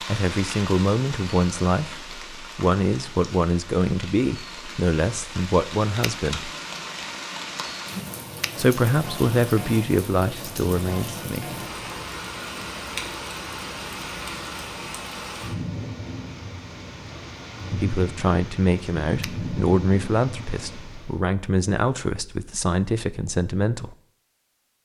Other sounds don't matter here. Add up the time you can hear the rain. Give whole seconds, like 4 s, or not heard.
21 s.